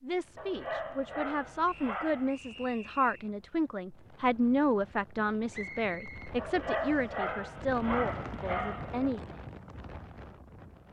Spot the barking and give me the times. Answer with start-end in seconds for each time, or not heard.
0.3-2.4, 6.3-9.1.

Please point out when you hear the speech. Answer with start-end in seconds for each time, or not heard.
0.0-9.4.